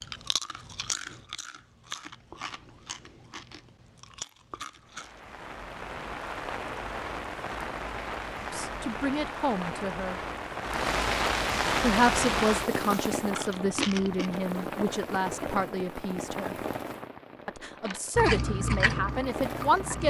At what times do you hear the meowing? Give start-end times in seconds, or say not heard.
not heard.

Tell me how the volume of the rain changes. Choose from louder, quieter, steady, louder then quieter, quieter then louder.
louder then quieter.